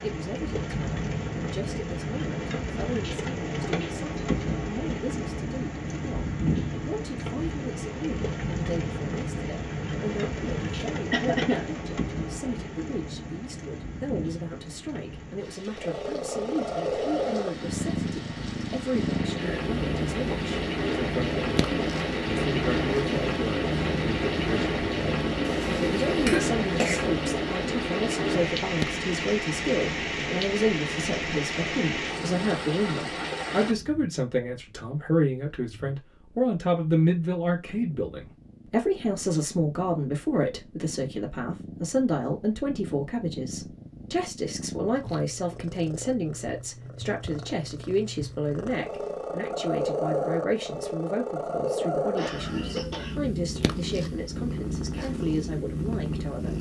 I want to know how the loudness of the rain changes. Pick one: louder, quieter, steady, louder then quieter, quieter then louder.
quieter then louder.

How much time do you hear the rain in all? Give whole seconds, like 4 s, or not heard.
34 s.